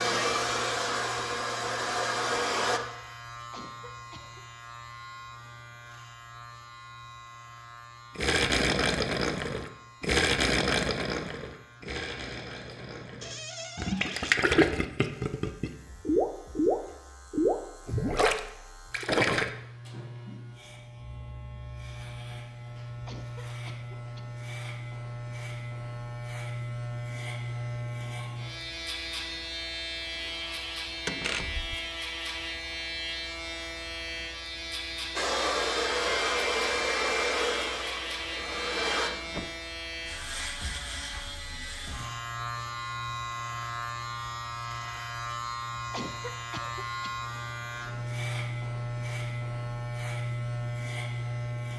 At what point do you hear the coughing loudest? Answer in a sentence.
The loudest moment of the coughing is at 46 seconds.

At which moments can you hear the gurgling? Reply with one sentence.
You can hear the gurgling from 8.2 to 19.5 s.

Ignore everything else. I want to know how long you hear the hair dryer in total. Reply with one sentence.
The hair dryer can be heard for 7 seconds in total.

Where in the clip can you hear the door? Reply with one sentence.
The door can be heard from 13.2 to 14.4 s, from 31.1 to 31.8 s and from 38.4 to 39.6 s.